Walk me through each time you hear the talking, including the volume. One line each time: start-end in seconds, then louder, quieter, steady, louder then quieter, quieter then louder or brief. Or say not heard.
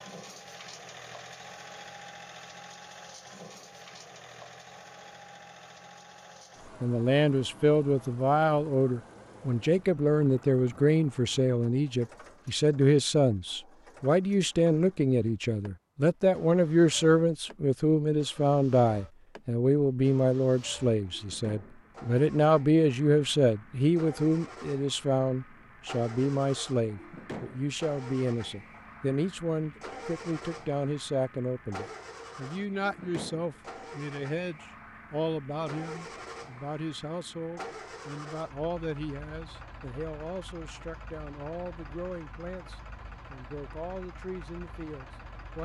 6.8-45.6 quieter.